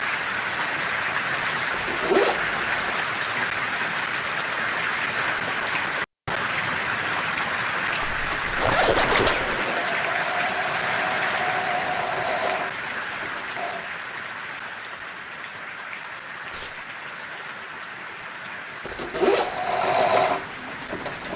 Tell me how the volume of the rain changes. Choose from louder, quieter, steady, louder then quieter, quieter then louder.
quieter.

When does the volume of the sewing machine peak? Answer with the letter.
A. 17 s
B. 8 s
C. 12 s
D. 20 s
D.